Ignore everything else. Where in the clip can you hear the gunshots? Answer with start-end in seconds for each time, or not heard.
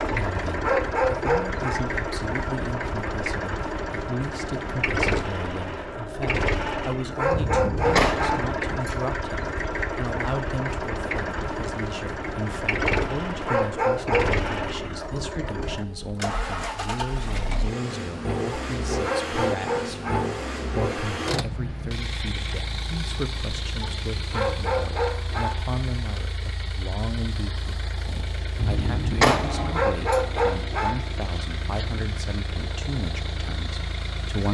7.3-9.0, 28.6-30.2.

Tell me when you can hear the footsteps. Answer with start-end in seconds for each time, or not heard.
not heard.